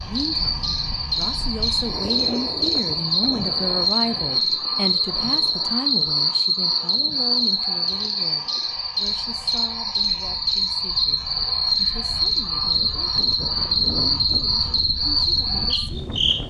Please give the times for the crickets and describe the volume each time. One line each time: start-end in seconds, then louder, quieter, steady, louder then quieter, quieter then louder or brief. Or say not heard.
0.0-16.4 steady.